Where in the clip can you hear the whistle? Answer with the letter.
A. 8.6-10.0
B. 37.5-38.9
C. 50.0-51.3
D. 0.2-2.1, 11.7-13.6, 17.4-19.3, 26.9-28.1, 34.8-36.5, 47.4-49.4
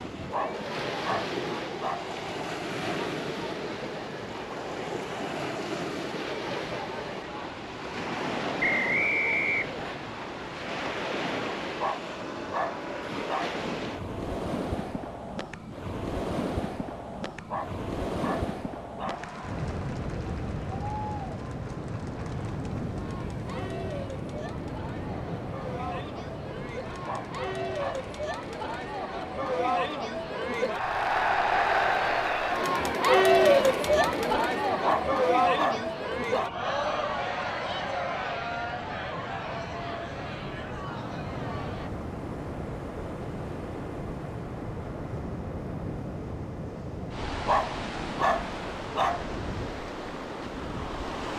A.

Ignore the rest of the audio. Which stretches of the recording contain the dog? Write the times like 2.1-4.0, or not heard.
0.2-2.1, 11.7-13.6, 17.4-19.3, 26.9-28.1, 34.8-36.5, 47.4-49.4.